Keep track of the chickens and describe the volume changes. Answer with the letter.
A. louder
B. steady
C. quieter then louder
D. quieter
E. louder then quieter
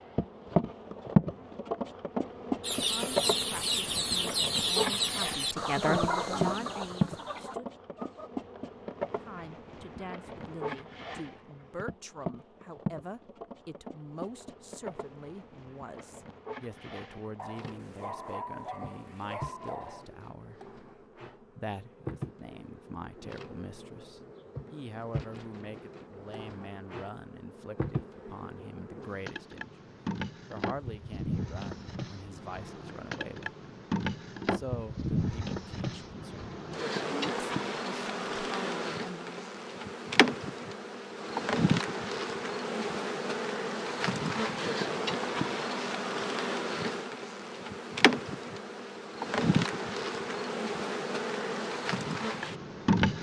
D.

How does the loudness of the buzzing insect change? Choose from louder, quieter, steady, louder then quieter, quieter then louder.
quieter then louder.